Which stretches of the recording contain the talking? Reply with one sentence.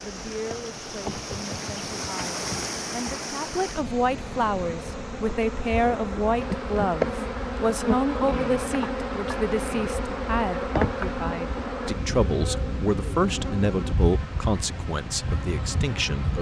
The talking can be heard from 0.0 to 16.3 s.